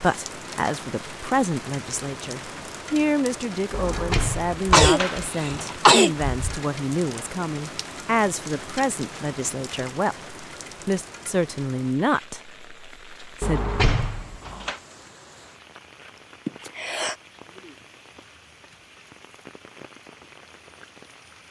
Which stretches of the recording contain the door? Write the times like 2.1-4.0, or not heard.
3.7-5.8, 13.4-14.8.